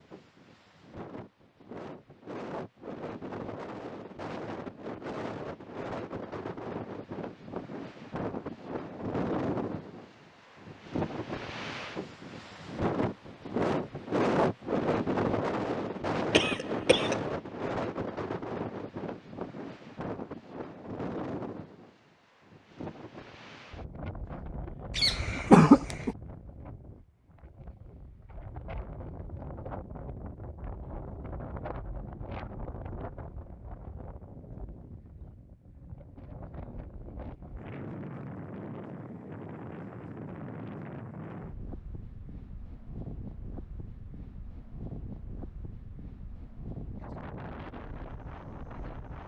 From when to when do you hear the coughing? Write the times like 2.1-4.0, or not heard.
16.3-17.2, 24.9-26.1.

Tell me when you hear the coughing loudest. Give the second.
26 s.